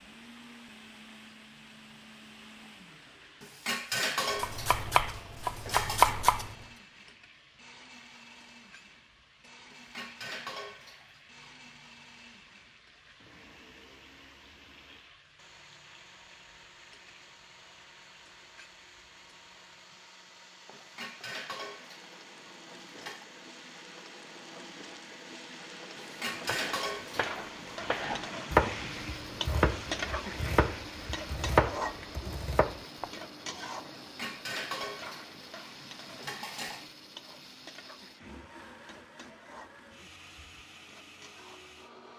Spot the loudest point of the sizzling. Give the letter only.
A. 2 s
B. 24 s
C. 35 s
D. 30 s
D.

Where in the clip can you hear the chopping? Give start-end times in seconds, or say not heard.
4.4-6.5, 26.4-33.1.